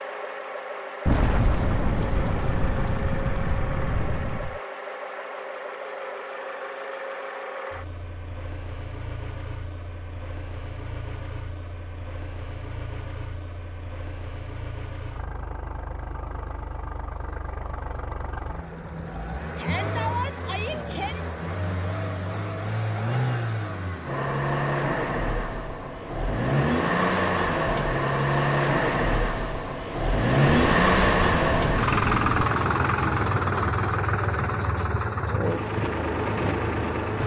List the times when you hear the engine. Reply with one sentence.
You can hear the engine from 0.0 to 37.2 s.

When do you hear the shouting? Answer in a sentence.
The shouting can be heard from 19.6 to 21.2 s.